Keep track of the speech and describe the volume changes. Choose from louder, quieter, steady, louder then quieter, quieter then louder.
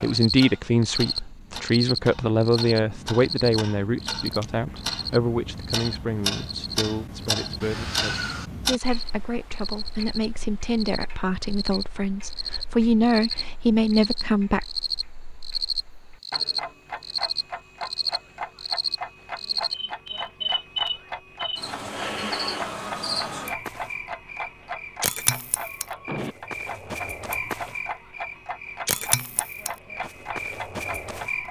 quieter then louder.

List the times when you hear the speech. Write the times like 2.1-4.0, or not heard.
0.0-14.7.